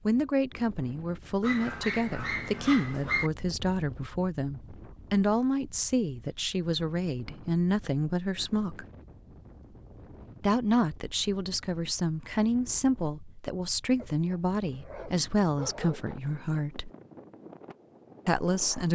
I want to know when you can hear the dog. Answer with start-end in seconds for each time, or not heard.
1.4-3.3, 13.9-16.2.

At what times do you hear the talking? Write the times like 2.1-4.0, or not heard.
0.1-8.8, 10.4-16.9, 18.2-18.9.